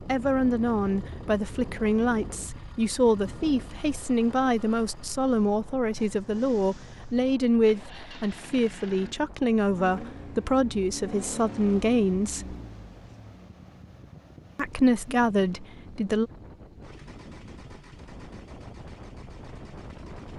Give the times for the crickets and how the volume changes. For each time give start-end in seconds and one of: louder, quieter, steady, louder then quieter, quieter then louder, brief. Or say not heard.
not heard.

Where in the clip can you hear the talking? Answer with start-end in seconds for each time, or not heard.
0.1-12.6, 14.6-16.3.